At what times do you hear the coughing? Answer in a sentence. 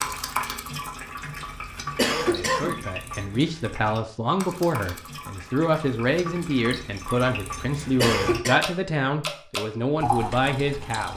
The coughing can be heard from 1.9 to 2.9 s and from 8.0 to 8.6 s.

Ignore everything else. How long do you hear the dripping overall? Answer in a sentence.
The dripping can be heard for 11 seconds in total.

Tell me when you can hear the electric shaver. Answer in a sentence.
The electric shaver can't be heard in this clip.